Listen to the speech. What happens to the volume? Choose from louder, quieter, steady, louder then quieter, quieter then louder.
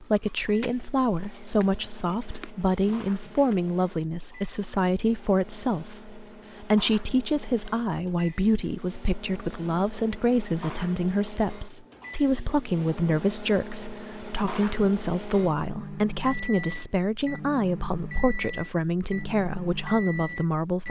steady.